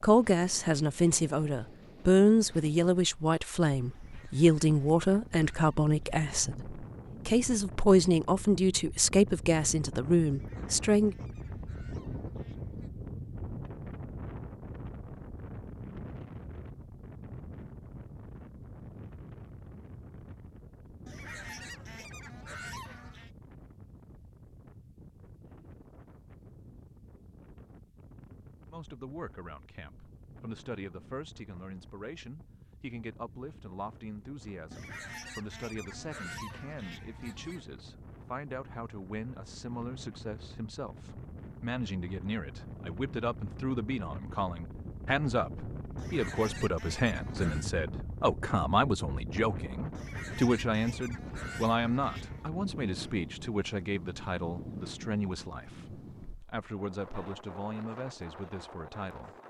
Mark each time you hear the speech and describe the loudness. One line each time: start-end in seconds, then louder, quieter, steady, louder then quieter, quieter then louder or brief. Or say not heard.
0.0-11.2 steady
28.7-59.4 louder then quieter.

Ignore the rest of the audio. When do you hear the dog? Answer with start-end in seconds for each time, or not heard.
not heard.